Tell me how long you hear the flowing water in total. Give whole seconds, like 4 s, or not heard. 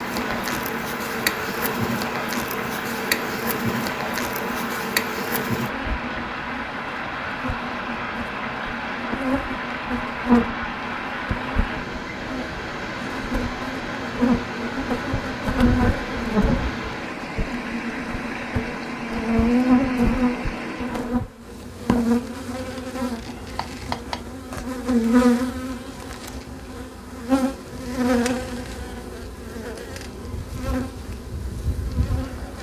21 s.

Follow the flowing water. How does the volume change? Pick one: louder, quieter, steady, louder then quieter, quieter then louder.
steady.